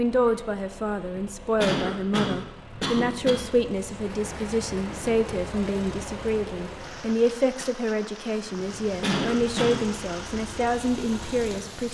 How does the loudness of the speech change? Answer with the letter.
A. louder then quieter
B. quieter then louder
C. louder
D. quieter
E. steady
E.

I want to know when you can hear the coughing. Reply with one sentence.
You can hear the coughing from 1.1 to 3.4 s and from 8.6 to 9.8 s.